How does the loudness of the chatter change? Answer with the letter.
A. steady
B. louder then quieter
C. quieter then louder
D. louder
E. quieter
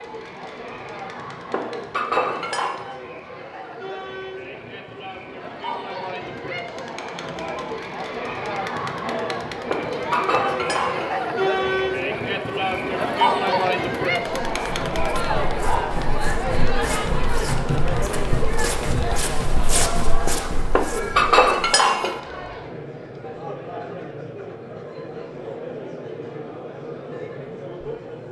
B.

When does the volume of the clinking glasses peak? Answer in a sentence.
The loudest moment of the clinking glasses is at 21 seconds.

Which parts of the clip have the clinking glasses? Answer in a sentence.
You can hear the clinking glasses from 1.5 to 2.8 s, from 9.7 to 11.2 s and from 20.8 to 22.2 s.